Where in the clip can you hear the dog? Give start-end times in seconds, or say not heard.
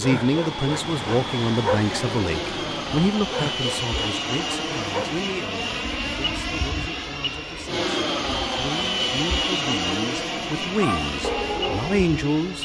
0.0-5.2, 10.8-12.6.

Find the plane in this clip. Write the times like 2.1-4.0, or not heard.
0.0-12.6.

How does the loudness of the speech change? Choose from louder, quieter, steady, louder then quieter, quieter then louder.
quieter then louder.